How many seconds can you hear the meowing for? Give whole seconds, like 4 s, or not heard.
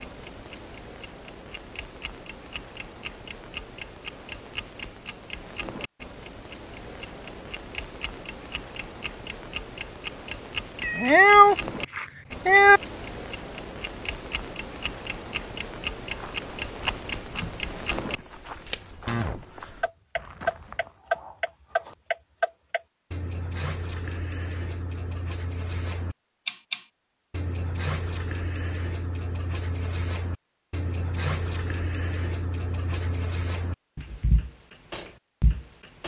2 s.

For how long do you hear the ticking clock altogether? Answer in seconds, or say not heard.
36 s.